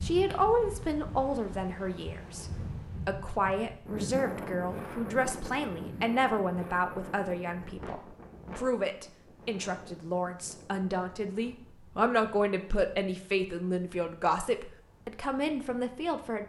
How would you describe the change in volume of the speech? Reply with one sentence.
The volume of the speech stays about the same.